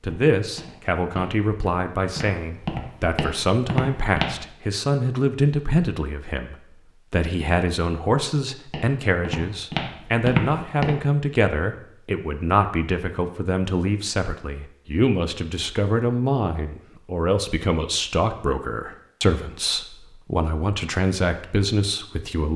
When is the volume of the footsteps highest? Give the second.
10 s.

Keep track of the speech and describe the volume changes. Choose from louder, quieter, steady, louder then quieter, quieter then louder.
steady.